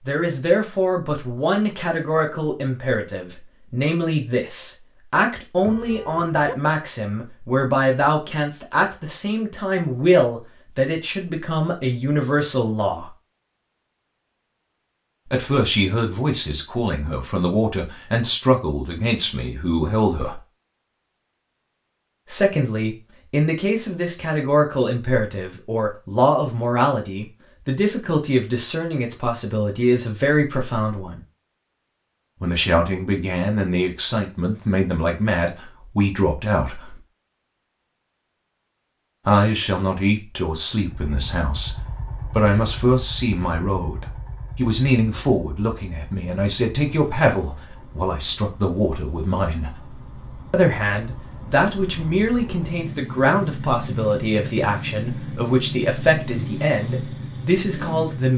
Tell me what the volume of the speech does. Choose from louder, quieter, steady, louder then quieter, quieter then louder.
steady.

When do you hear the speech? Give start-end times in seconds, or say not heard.
0.1-13.1, 15.3-20.4, 22.2-31.2, 32.4-37.0, 39.2-49.7, 50.5-58.3.